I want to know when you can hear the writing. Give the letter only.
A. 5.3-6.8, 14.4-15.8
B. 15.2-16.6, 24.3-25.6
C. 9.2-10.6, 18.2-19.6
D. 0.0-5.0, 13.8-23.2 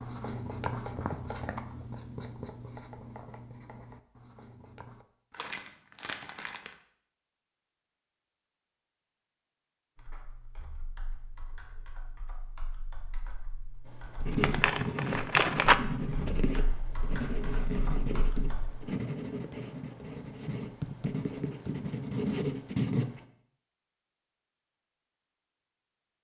D.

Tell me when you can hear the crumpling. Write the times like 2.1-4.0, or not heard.
5.3-6.8, 14.4-15.8.